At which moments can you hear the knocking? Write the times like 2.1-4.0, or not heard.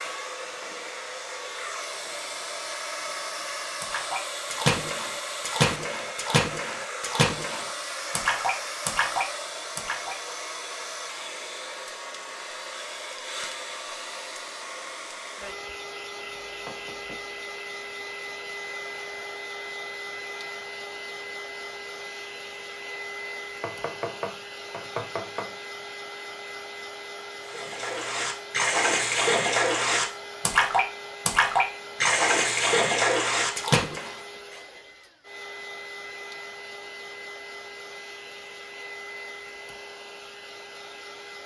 16.4-17.3, 23.6-25.5.